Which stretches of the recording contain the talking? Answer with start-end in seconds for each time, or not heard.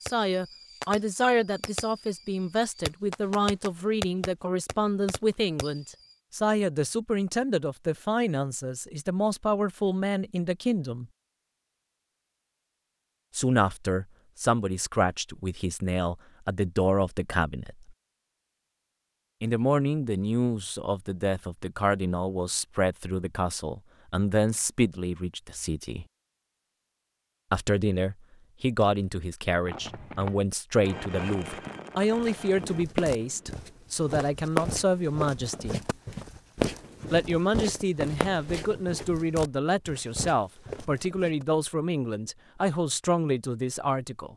0.0-11.1, 13.3-17.9, 19.4-26.1, 27.5-35.8, 37.1-44.3.